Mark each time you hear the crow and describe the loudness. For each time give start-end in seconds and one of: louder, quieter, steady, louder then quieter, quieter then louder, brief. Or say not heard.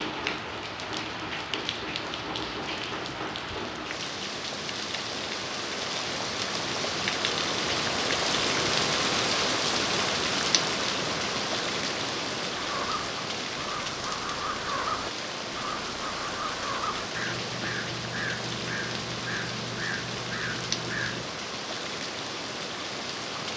12.5-21.3 steady.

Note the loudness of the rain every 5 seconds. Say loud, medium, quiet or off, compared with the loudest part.
medium, loud, loud, medium, medium.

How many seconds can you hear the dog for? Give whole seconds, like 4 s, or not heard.
not heard.